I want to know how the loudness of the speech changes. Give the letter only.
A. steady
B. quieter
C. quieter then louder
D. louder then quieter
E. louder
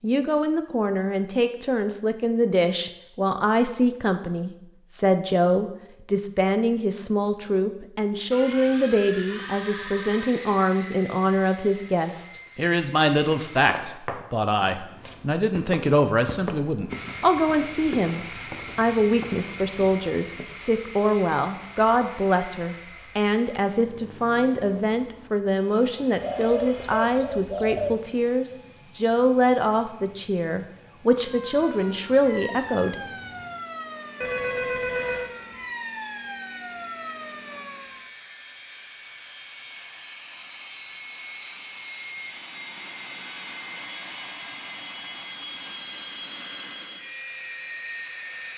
A.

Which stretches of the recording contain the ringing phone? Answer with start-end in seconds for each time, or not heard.
9.2-10.6, 26.2-27.1, 34.2-35.3.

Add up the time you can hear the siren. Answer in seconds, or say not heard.
7 s.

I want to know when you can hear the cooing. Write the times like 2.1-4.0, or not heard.
26.2-27.9.